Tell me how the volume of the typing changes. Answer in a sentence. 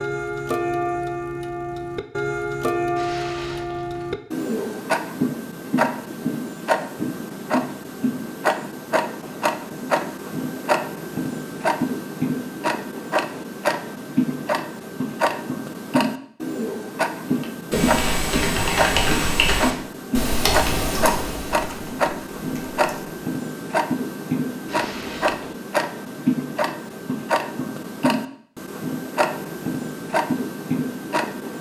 The loudness of the typing goes down.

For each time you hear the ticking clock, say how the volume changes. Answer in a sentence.
You can hear the ticking clock from 0.0 to 31.5 s, at a steady volume.